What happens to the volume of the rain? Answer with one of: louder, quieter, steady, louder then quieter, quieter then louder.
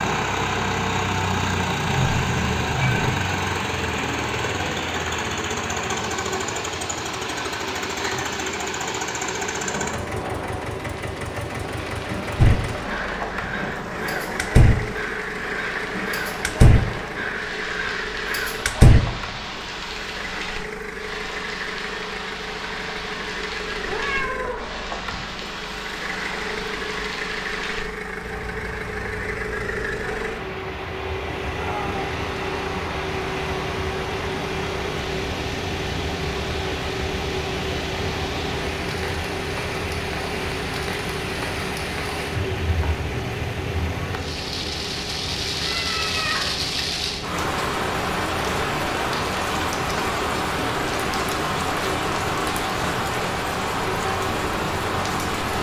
louder.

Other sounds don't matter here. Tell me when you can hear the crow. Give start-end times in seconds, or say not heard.
12.3-19.0.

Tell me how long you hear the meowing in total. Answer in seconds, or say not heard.
3 s.